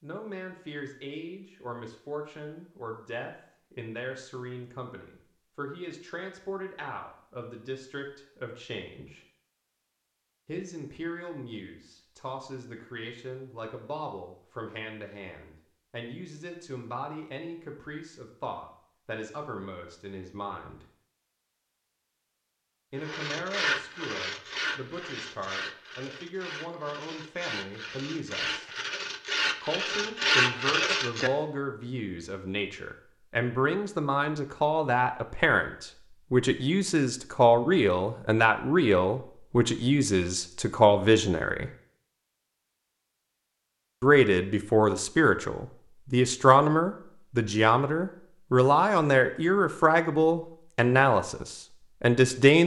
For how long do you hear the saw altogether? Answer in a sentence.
The saw can be heard for 8 seconds in total.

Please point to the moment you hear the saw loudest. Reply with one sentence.
The loudest moment of the saw is at 30 seconds.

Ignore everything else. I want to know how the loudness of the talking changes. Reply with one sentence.
The volume of the talking goes up.